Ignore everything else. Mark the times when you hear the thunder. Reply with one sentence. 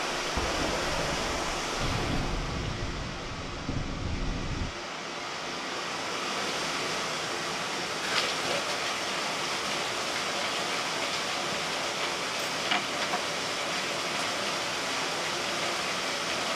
You can hear the thunder from 0.3 to 4.8 s.